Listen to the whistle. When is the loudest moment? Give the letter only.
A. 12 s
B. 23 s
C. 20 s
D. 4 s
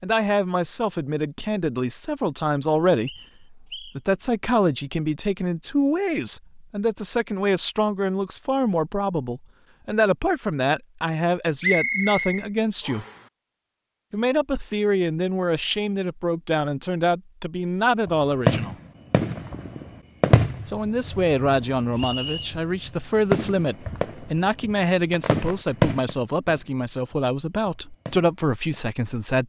A.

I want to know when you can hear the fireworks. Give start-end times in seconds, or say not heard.
18.1-28.9.